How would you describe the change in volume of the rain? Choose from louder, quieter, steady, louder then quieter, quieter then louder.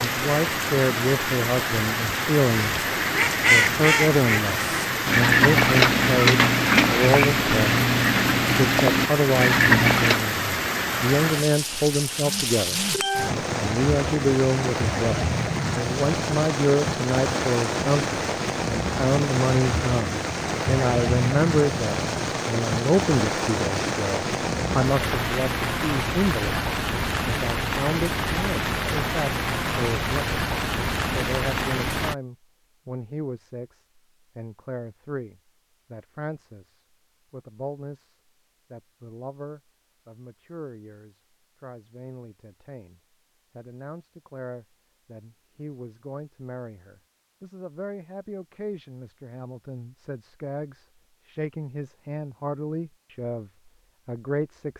steady.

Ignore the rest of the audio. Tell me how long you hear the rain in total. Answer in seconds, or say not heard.
32 s.